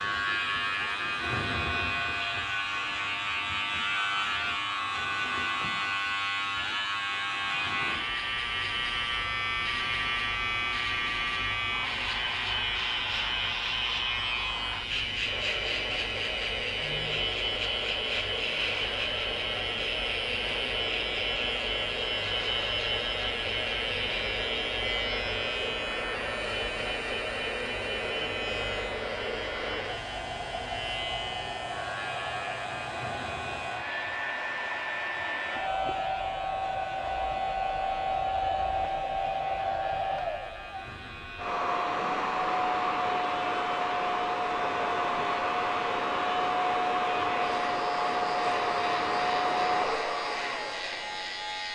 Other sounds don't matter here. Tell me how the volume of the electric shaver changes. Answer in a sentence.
The loudness of the electric shaver goes down.